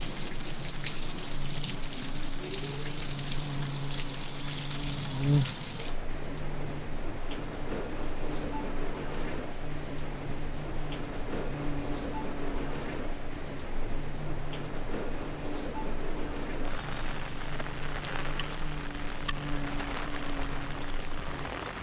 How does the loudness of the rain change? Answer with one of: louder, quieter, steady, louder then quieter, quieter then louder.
steady.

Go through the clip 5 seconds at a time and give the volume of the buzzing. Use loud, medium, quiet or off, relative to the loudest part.
medium, loud, medium, medium, medium.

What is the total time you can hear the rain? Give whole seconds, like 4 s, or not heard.
22 s.